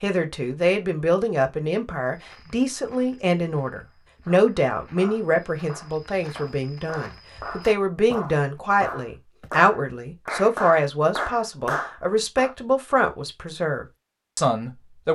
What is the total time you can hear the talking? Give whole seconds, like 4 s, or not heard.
15 s.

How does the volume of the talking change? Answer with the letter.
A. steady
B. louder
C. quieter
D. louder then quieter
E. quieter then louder
A.